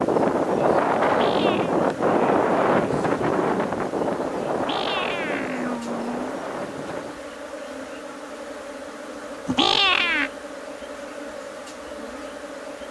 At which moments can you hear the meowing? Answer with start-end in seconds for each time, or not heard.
1.1-1.8, 4.5-6.2, 9.4-10.3.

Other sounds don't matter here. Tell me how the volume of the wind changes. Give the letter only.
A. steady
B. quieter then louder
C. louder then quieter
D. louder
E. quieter
E.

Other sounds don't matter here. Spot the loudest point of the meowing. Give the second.
10 s.